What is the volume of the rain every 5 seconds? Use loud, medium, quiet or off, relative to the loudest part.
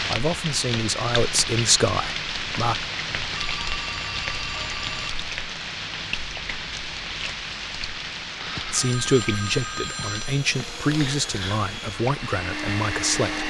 loud, loud, medium.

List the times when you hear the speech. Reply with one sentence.
You can hear the speech from 0.1 to 2.8 s and from 8.7 to 13.4 s.